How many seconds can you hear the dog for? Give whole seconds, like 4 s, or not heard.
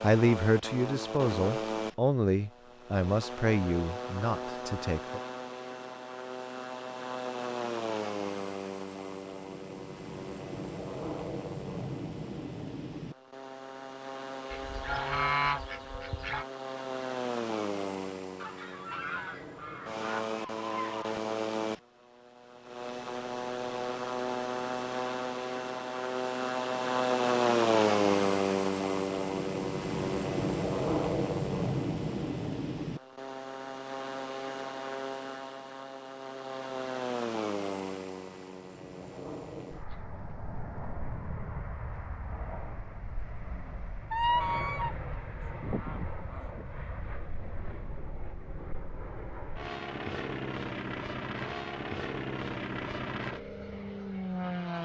not heard.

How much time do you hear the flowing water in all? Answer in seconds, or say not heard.
not heard.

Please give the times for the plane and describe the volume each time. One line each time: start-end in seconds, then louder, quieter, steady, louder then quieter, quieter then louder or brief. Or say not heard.
0.0-54.8 louder then quieter.